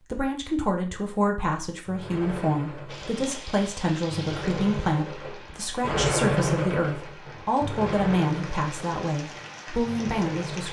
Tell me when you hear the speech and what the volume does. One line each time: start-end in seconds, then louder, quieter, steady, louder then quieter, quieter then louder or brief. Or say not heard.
0.1-10.6 steady.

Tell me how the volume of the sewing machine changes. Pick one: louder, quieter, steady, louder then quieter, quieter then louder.
louder then quieter.